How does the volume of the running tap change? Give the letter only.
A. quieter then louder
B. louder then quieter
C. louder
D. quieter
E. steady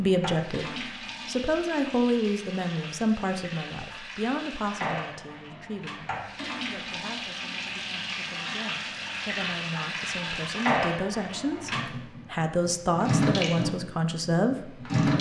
C.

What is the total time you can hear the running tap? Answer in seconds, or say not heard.
15 s.